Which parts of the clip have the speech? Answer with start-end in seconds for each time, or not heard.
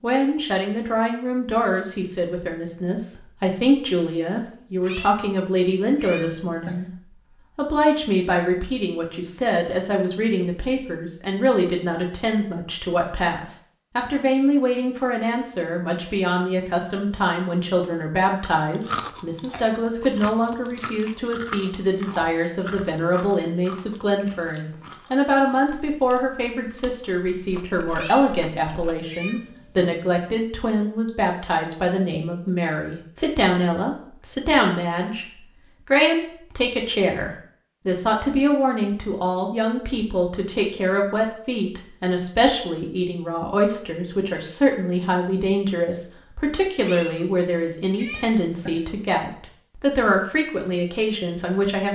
0.0-6.8, 7.5-51.9.